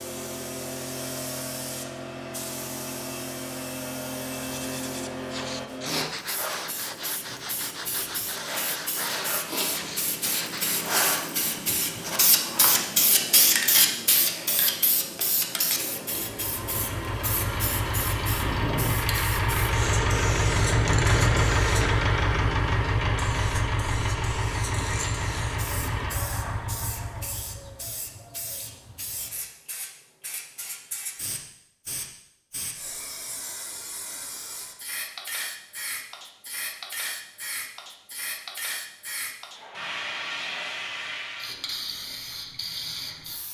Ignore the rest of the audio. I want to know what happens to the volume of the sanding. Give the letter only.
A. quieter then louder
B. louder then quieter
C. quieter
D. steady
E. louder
D.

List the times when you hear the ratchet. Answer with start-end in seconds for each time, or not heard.
not heard.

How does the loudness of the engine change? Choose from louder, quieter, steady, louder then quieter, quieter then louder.
louder then quieter.